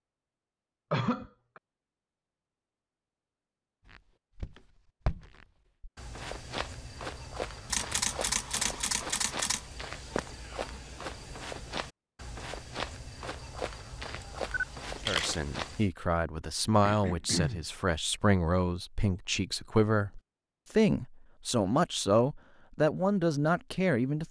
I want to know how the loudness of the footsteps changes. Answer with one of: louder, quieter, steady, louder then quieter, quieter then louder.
steady.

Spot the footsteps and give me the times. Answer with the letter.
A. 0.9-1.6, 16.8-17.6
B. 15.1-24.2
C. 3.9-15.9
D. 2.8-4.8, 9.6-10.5
C.